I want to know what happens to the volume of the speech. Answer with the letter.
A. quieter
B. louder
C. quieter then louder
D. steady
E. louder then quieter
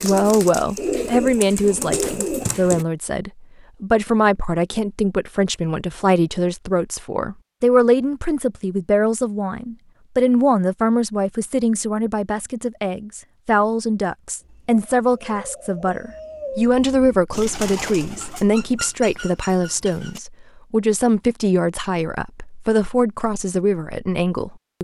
D.